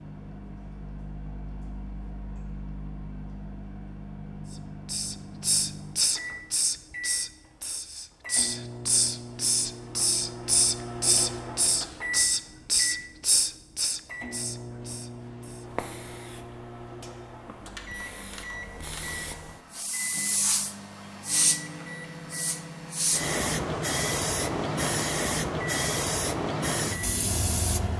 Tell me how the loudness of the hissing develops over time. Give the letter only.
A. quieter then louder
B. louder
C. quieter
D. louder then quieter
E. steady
A.